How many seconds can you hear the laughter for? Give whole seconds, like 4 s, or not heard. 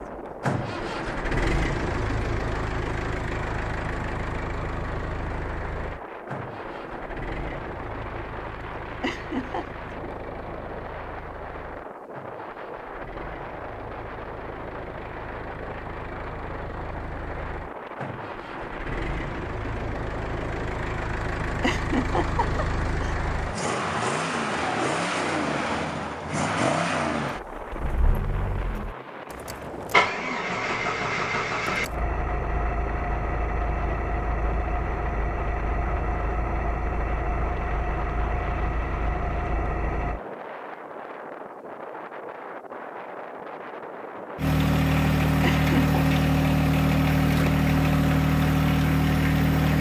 3 s.